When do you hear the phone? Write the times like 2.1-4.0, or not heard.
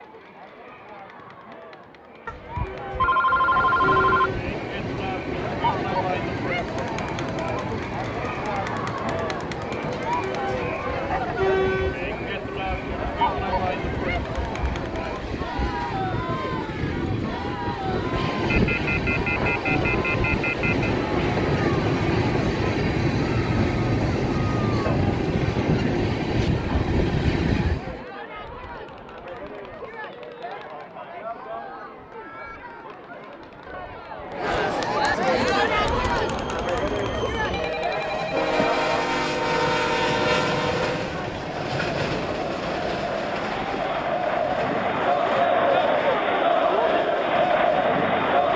2.2-4.3, 18.4-20.9, 37.5-38.9.